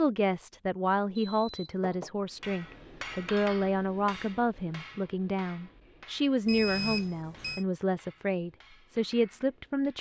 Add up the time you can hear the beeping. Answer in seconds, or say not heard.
2 s.